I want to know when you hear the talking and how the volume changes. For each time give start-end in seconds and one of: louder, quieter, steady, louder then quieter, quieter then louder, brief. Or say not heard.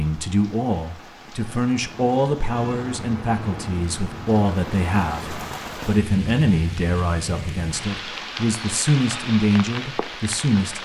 0.0-10.8 steady.